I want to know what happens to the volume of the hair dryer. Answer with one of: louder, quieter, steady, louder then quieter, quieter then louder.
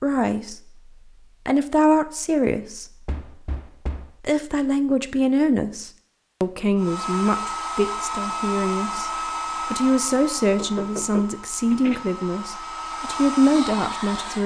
quieter then louder.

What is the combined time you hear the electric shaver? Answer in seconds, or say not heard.
not heard.